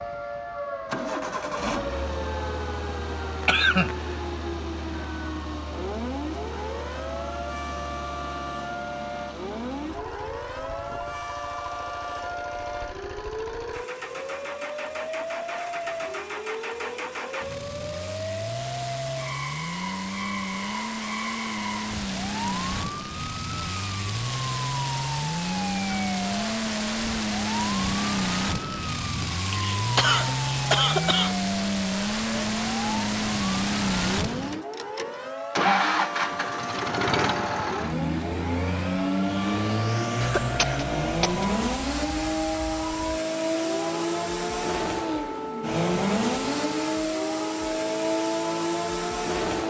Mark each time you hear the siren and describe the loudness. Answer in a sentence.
You can hear the siren from 0.0 to 49.6 s, at a steady volume.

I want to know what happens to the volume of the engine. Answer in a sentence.
The volume of the engine goes up.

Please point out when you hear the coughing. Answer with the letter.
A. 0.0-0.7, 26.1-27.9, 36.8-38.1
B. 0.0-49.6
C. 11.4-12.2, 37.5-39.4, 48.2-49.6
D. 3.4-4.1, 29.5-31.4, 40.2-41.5
D.